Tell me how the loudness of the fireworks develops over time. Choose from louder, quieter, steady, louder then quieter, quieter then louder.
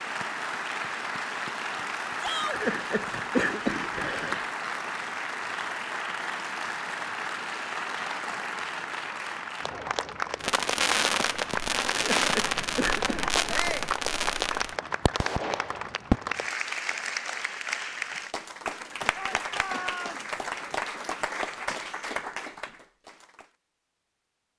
quieter.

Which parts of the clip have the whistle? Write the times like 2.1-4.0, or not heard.
not heard.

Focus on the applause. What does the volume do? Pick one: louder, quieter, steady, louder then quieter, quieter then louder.
steady.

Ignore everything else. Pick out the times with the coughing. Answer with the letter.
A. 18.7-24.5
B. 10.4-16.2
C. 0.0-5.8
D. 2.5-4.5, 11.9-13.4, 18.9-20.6
D.